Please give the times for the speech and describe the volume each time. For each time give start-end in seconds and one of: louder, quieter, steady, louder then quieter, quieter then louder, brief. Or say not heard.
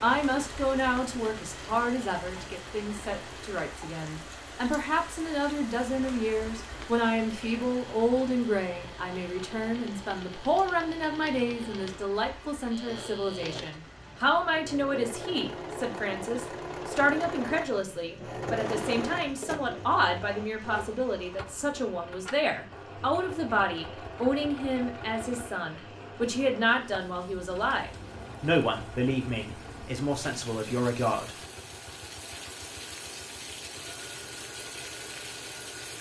0.0-31.4 steady.